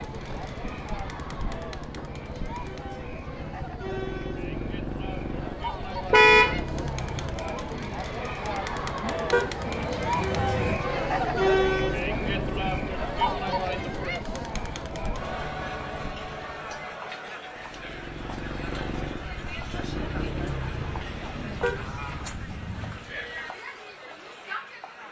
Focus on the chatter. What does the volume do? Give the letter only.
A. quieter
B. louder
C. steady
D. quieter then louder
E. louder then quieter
E.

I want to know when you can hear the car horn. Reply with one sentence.
You can hear the car horn from 6.1 to 6.6 s, from 9.3 to 10.8 s and from 21.6 to 23.0 s.